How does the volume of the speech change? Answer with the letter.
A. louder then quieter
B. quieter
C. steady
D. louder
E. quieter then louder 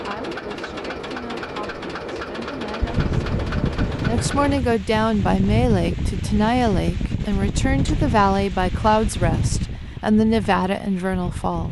D.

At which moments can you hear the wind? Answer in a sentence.
You can hear the wind from 2.8 to 11.6 s.